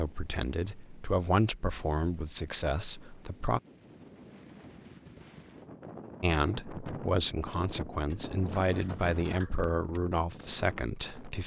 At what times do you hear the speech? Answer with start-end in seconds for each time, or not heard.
0.0-3.6, 6.2-11.4.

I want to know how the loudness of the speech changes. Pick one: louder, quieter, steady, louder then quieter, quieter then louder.
steady.